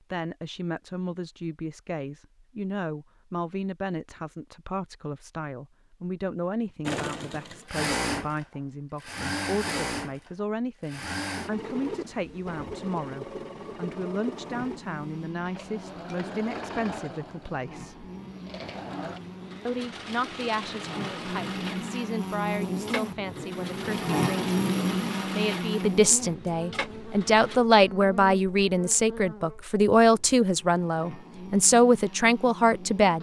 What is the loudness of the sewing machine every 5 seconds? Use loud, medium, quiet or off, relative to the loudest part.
off, loud, medium, medium, medium, medium, off.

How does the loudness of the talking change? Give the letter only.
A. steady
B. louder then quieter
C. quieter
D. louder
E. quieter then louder
D.